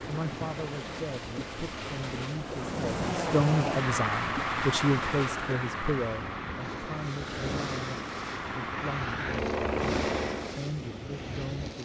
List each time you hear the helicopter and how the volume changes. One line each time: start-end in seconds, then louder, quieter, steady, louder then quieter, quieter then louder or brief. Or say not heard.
2.4-10.7 quieter then louder.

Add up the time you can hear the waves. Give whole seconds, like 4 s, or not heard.
12 s.